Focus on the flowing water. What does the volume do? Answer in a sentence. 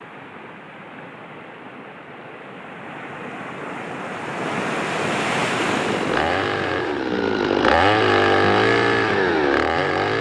The loudness of the flowing water goes up.